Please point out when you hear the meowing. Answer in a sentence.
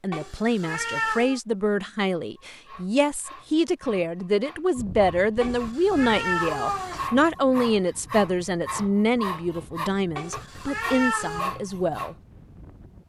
You can hear the meowing from 0.1 to 1.4 s, from 5.4 to 7.1 s and from 10.2 to 11.6 s.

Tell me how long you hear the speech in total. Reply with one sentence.
The speech can be heard for 12 seconds in total.